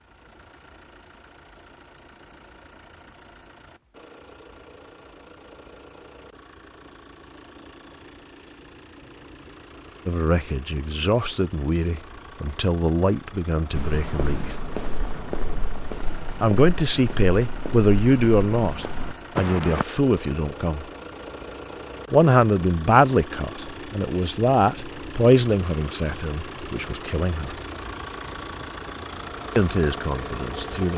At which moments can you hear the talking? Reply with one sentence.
The talking can be heard from 10.1 to 14.6 s, from 16.4 to 20.9 s, from 22.1 to 27.6 s and from 29.6 to 30.9 s.